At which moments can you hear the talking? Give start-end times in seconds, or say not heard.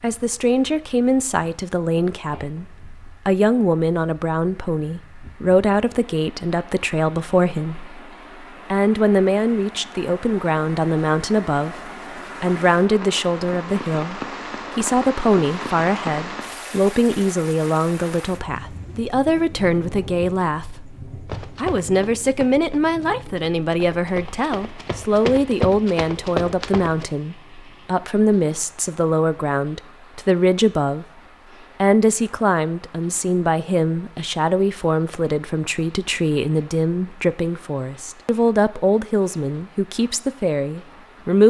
0.0-31.1, 31.8-41.4.